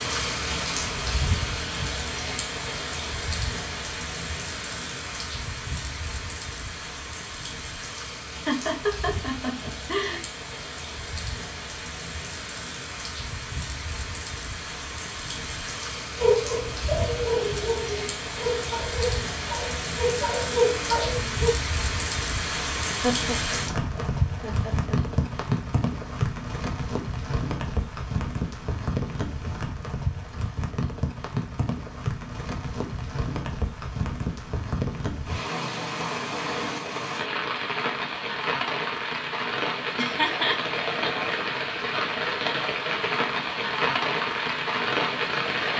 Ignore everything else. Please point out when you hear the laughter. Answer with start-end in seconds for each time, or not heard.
8.4-10.2, 23.0-24.9, 39.9-40.6.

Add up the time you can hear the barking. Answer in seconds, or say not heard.
5 s.